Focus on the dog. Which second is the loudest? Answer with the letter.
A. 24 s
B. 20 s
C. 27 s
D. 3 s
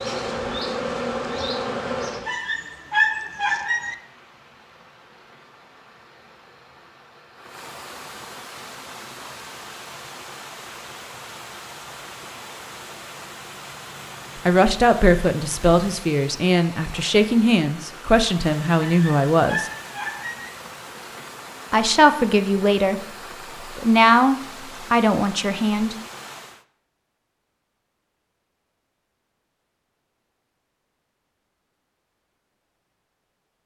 D.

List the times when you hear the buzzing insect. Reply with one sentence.
The buzzing insect can be heard from 0.0 to 2.3 s.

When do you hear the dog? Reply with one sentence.
The dog can be heard from 2.2 to 4.0 s and from 18.8 to 20.5 s.